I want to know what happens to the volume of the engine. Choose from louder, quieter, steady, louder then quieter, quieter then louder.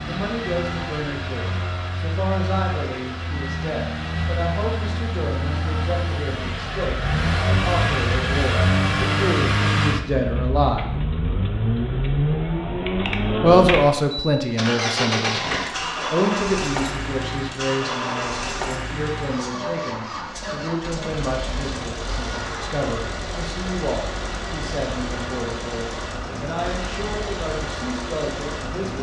louder then quieter.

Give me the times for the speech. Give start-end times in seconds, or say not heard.
0.1-10.9, 13.4-15.4, 16.1-28.9.